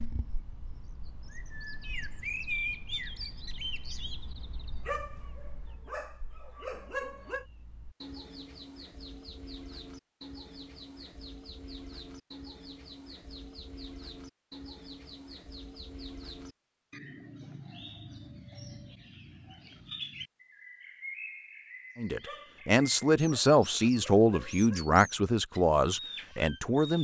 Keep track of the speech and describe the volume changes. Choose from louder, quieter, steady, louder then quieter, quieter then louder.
steady.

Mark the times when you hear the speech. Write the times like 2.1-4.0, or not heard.
21.9-26.9.